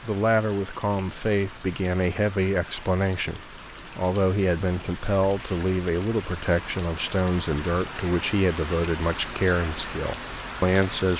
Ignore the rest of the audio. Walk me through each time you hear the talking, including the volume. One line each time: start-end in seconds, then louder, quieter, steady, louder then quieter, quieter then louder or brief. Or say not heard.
0.0-11.1 steady.